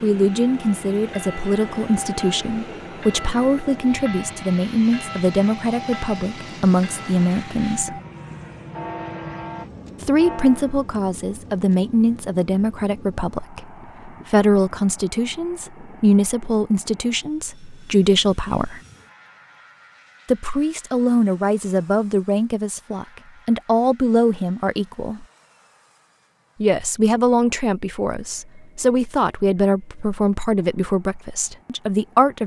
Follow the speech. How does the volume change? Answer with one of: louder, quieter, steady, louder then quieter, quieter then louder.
steady.